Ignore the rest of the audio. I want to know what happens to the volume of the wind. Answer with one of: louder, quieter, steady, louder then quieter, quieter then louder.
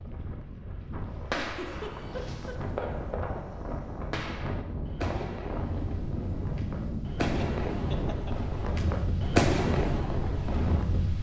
louder.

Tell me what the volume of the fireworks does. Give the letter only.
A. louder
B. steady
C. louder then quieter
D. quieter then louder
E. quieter
A.